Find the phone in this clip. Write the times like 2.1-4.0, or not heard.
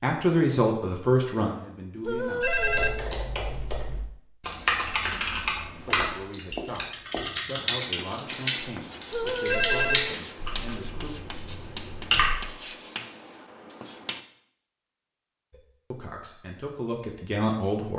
2.0-3.1, 9.1-10.2.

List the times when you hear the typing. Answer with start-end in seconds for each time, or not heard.
2.5-12.6.